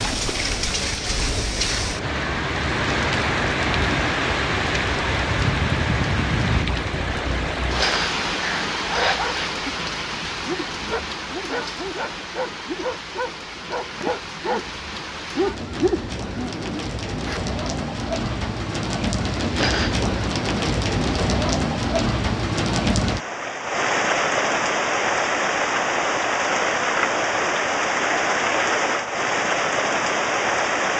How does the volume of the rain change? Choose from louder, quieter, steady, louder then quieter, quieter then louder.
quieter then louder.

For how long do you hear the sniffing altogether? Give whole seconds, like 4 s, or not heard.
2 s.